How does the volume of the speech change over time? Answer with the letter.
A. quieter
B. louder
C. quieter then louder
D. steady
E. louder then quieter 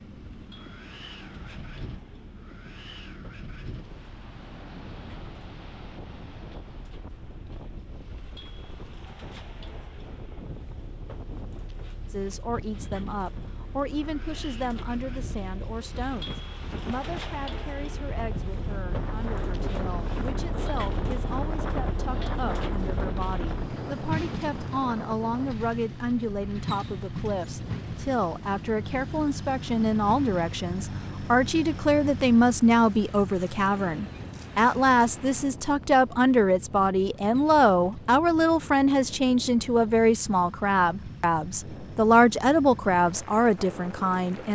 B.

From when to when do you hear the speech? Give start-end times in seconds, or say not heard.
12.1-44.5.